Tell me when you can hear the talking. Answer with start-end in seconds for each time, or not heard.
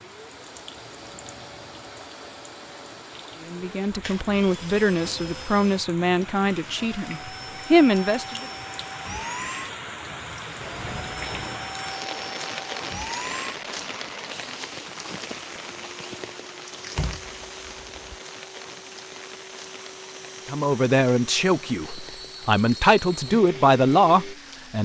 3.5-8.4, 20.4-24.8.